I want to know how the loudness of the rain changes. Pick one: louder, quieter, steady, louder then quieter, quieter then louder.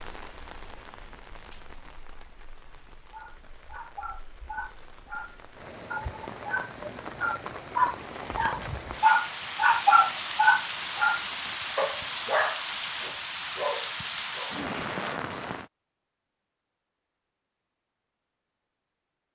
louder.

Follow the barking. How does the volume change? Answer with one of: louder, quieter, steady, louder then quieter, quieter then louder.
louder then quieter.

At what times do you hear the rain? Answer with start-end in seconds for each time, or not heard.
0.0-15.7.